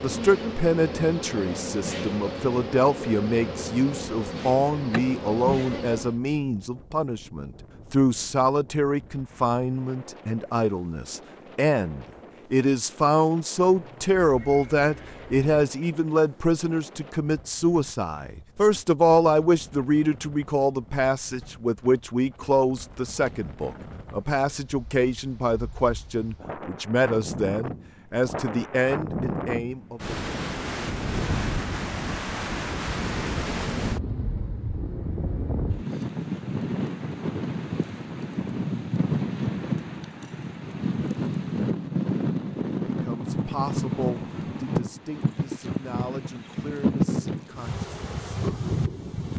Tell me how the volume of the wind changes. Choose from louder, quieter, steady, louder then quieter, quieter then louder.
louder.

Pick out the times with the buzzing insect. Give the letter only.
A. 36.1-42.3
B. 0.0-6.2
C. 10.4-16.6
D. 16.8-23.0
B.